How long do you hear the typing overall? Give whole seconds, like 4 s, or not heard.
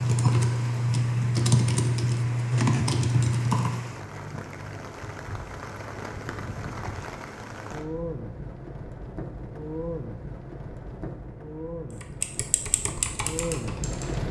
6 s.